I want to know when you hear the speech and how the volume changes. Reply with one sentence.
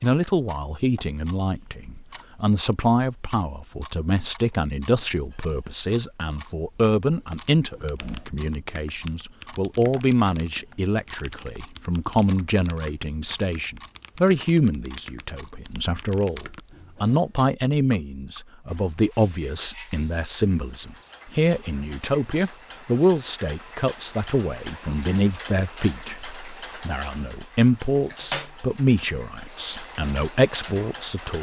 You can hear the speech from 0.0 to 31.3 s, at a steady volume.